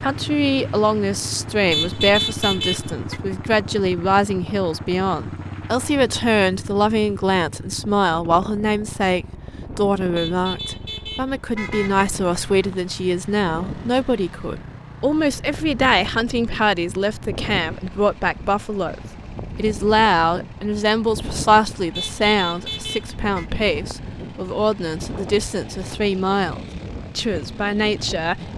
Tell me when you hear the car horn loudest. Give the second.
2 s.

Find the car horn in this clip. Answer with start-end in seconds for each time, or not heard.
1.7-3.2, 10.2-12.1, 21.9-23.5.